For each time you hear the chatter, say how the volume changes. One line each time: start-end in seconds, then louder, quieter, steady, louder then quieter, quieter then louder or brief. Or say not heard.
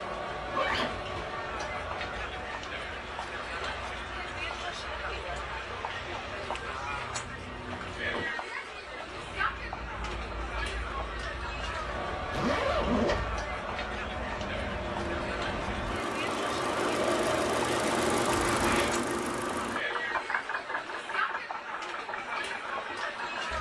0.0-23.5 steady.